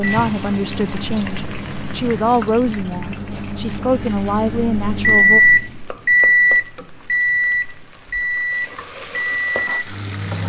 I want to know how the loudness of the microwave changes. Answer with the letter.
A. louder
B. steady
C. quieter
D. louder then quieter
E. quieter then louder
D.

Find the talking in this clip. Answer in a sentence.
The talking can be heard from 0.0 to 5.4 s.